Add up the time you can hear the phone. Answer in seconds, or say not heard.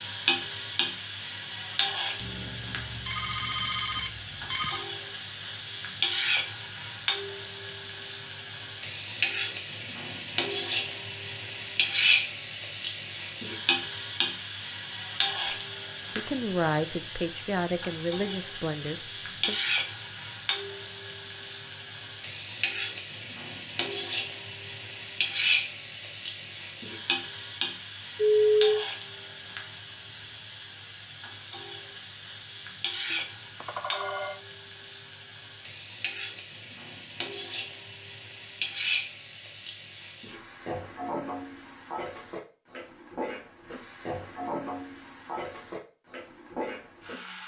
5 s.